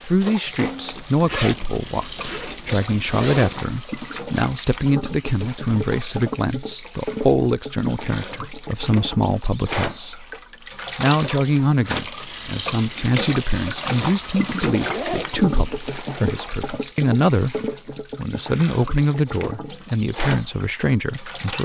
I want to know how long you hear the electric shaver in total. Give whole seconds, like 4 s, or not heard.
not heard.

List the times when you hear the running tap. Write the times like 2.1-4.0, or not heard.
0.0-21.6.